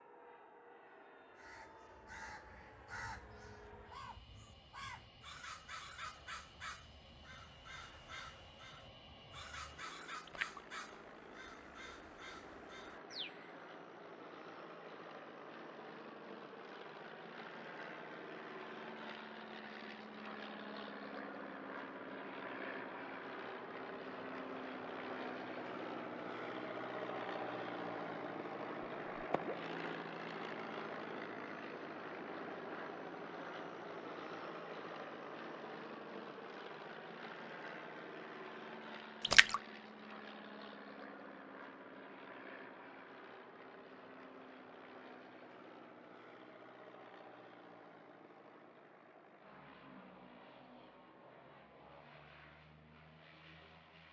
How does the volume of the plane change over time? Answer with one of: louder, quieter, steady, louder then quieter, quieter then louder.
louder then quieter.